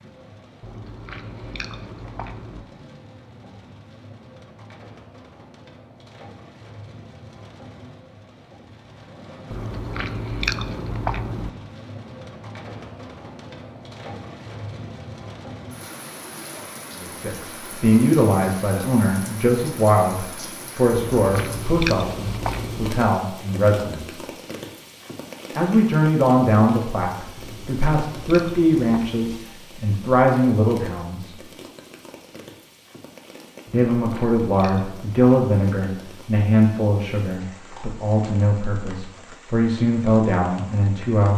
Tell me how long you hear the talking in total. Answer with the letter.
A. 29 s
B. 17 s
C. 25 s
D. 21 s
D.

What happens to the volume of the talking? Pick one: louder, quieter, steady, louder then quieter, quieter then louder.
steady.